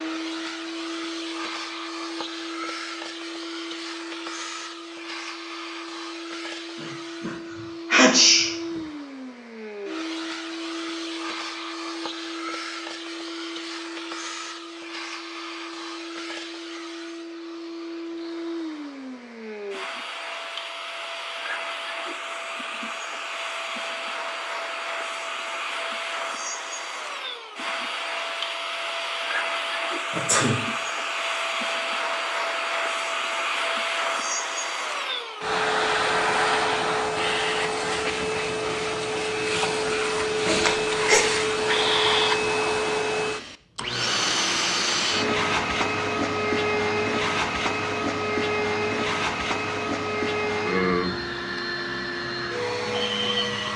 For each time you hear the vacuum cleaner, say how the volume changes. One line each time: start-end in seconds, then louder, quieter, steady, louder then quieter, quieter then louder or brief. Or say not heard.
0.0-53.7 louder.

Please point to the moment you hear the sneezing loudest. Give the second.
8 s.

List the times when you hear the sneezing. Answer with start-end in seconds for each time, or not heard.
6.8-8.8, 30.1-30.6, 40.5-41.2.